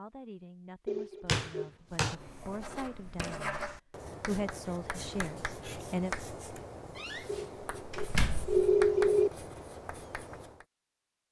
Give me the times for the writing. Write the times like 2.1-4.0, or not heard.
2.0-10.7.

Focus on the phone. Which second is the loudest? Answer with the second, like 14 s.
9 s.